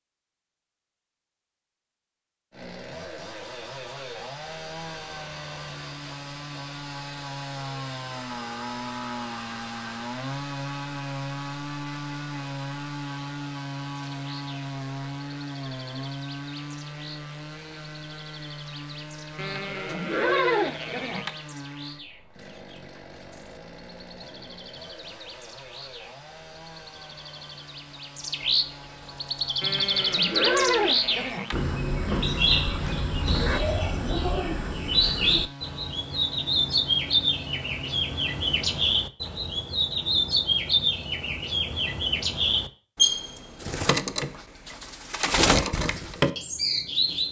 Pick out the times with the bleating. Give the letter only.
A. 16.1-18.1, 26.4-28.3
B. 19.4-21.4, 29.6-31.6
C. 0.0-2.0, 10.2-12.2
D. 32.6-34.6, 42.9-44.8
B.